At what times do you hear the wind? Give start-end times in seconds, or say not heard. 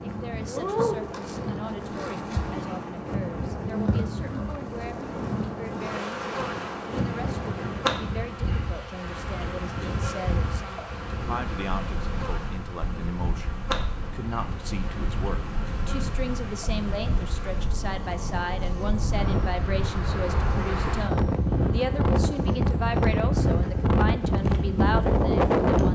0.0-25.9.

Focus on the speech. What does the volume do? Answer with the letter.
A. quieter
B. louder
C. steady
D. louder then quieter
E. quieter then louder
B.